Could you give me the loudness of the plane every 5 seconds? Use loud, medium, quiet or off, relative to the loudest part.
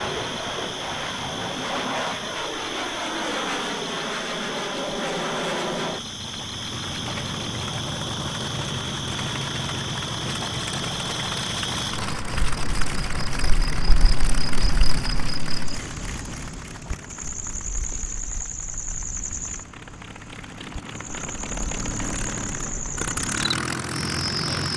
loud, loud, loud, medium, loud.